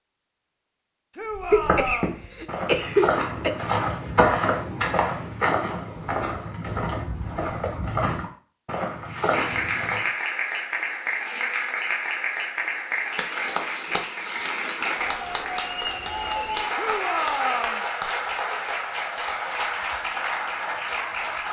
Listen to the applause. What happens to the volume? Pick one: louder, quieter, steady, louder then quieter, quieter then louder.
steady.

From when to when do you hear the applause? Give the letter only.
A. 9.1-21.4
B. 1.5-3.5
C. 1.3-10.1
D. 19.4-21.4
A.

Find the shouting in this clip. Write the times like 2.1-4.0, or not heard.
1.1-2.2, 16.8-17.9.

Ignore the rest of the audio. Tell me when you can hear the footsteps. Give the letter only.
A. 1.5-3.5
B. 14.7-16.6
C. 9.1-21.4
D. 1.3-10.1
D.